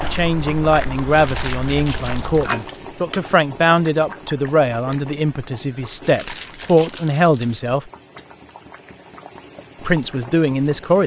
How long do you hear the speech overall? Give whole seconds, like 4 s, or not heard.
9 s.